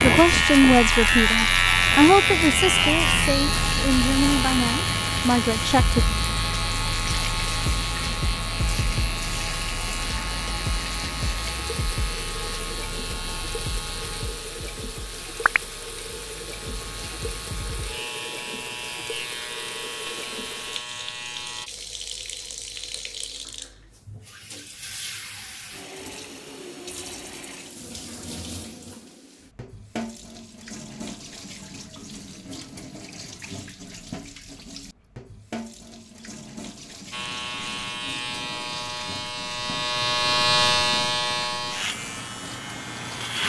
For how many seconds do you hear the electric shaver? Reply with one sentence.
The electric shaver can be heard for 28 seconds in total.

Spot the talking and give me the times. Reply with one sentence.
The talking can be heard from 0.0 to 6.0 s.